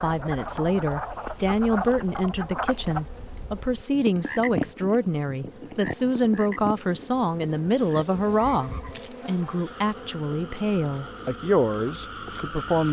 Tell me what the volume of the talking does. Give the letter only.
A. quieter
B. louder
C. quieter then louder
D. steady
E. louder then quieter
D.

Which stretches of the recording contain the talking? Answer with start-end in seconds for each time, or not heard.
0.0-12.8.